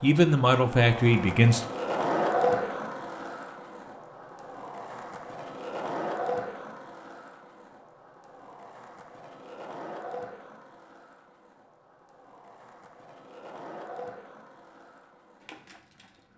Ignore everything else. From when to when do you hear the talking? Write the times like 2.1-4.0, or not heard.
0.0-1.6.